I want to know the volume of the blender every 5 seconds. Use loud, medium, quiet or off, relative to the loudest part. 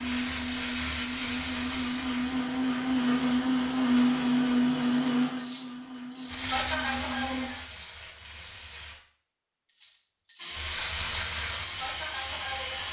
loud, medium, medium.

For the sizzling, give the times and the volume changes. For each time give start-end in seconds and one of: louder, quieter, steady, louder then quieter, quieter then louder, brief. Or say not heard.
0.0-4.7 quieter
6.2-9.0 brief
10.5-12.8 brief.